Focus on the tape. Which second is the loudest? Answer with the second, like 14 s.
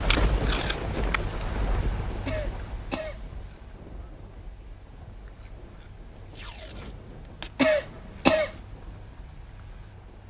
1 s.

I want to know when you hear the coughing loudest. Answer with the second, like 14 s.
8 s.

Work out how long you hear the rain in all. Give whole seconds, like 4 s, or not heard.
10 s.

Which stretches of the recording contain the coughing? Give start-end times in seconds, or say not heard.
2.2-3.2, 7.5-8.6.